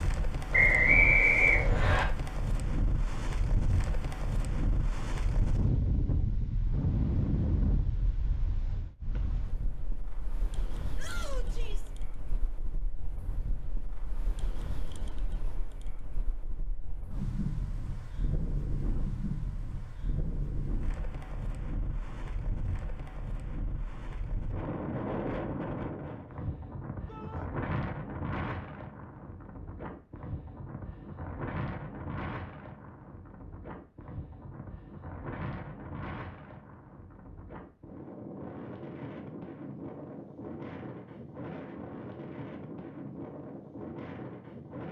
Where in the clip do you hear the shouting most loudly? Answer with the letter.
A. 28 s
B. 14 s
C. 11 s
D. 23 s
C.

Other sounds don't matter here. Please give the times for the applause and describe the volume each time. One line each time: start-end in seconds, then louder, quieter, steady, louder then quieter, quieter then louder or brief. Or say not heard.
not heard.